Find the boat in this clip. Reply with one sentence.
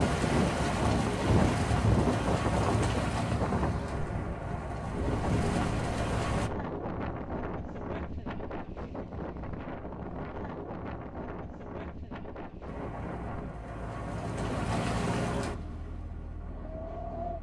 You can hear the boat from 0.0 to 6.5 s and from 12.7 to 17.3 s.